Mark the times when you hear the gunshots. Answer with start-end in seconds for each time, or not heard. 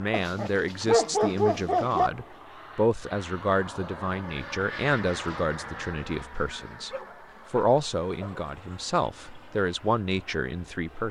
not heard.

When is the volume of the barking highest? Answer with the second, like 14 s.
1 s.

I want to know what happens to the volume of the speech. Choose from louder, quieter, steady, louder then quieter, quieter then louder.
steady.